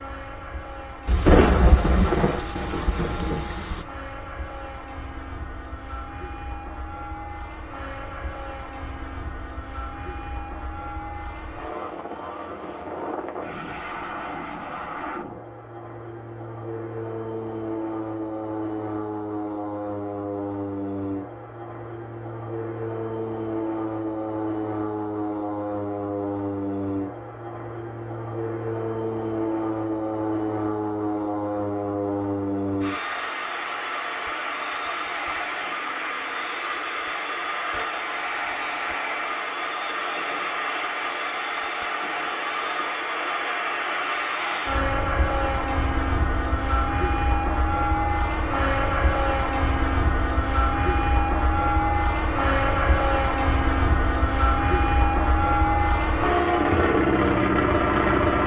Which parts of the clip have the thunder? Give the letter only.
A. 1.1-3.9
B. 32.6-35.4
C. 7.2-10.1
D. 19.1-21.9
A.